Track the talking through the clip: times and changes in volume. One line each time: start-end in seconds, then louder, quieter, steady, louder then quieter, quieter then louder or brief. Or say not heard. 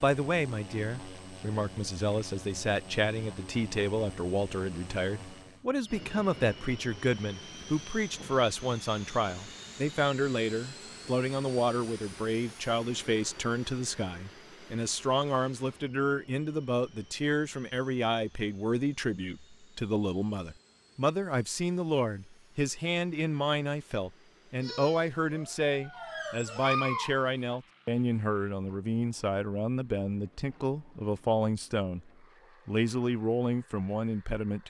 0.0-34.6 steady.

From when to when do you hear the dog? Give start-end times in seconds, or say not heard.
24.6-27.6.